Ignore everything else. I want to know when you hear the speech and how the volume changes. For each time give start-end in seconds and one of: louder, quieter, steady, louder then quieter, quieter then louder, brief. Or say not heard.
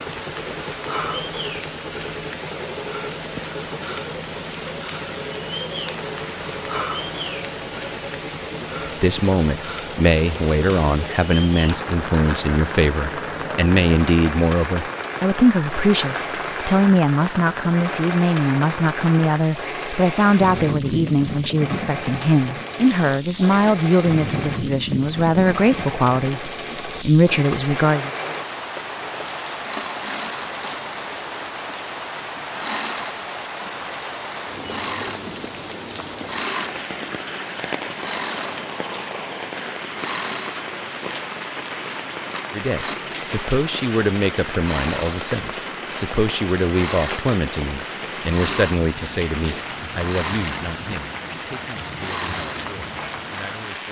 8.8-28.1 steady
42.5-53.8 quieter.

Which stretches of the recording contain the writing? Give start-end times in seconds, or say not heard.
not heard.